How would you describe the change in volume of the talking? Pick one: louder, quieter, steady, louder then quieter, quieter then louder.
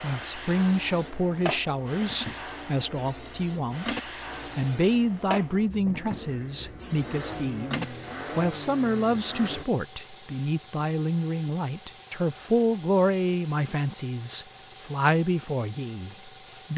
steady.